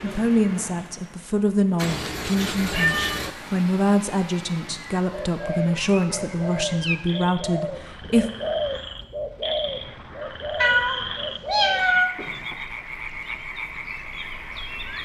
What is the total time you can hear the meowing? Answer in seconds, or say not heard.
4 s.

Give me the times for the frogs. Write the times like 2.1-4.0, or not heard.
6.1-15.0.